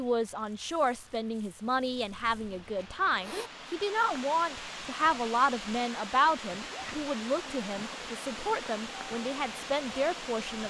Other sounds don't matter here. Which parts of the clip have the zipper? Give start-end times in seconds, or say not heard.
2.8-3.5, 6.5-7.0.